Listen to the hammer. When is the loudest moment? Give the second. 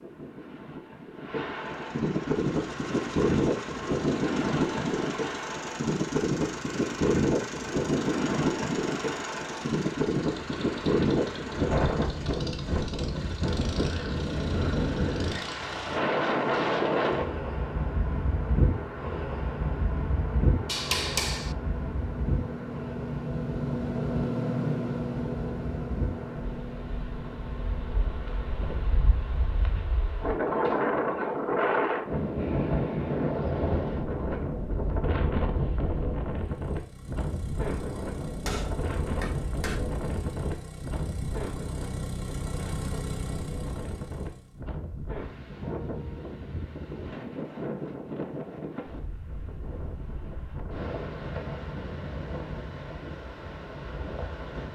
21 s.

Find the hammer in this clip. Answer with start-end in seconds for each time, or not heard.
20.6-21.6, 38.5-39.9.